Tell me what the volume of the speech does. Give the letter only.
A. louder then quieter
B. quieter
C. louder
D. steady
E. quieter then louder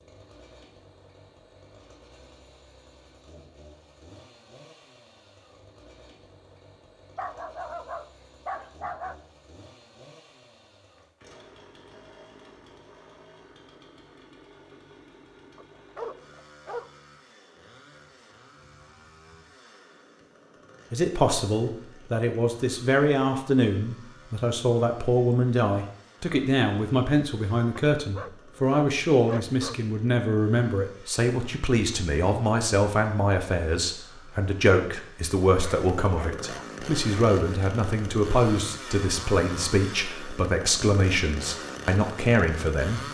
D.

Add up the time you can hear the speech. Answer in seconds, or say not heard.
22 s.